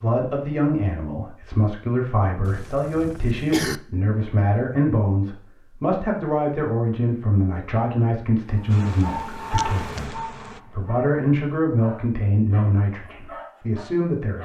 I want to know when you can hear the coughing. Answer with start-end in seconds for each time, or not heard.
2.5-3.8.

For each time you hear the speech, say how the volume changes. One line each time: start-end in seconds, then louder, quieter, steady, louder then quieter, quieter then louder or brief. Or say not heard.
0.0-14.4 steady.